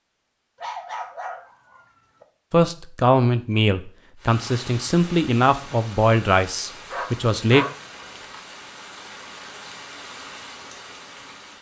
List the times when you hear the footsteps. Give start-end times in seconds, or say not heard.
not heard.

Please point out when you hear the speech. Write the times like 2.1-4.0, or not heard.
2.5-7.7.